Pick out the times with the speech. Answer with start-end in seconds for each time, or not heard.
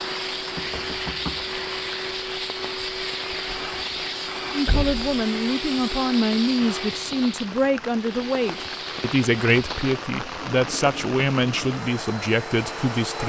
4.5-13.2.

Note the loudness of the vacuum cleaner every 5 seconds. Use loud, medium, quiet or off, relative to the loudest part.
loud, loud, medium.